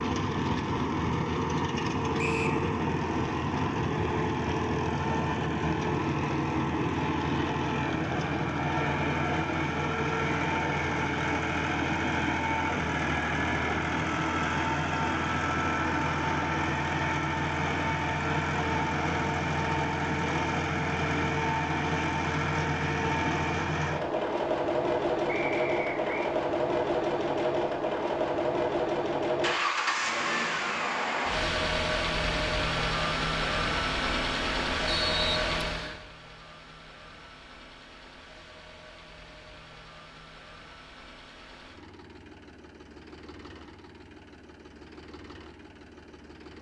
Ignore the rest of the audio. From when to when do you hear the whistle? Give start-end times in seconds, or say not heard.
2.1-2.6, 25.2-26.3, 34.9-36.0.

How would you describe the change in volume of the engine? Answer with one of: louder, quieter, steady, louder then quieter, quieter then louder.
quieter.